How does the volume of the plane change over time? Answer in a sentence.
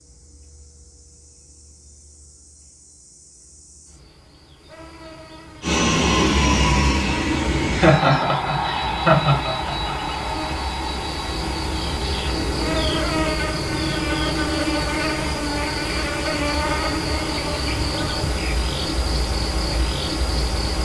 The loudness of the plane goes down.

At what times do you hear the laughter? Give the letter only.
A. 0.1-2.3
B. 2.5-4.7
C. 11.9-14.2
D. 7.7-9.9
D.